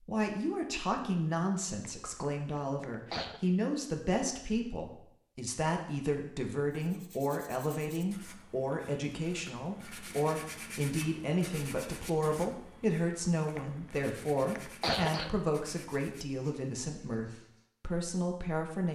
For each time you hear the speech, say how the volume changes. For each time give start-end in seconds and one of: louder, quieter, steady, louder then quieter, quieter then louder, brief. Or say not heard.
0.0-18.8 steady.